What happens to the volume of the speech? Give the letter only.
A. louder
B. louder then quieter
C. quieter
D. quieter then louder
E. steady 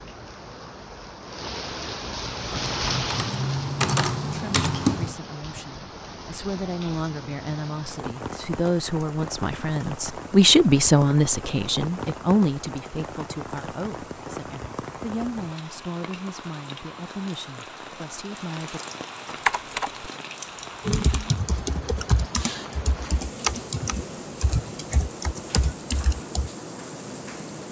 B.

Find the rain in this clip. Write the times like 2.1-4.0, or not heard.
0.0-27.6.